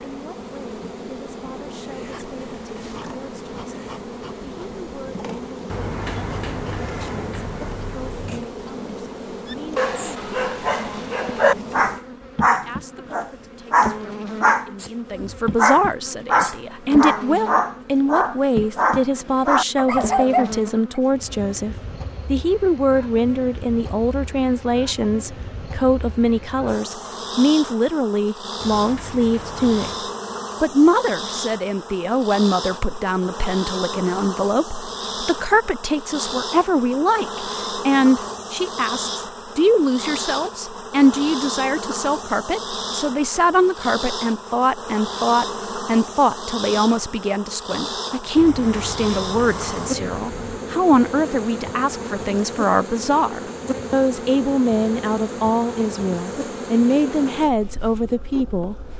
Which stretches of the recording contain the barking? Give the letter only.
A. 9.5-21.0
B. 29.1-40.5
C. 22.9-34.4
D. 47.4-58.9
A.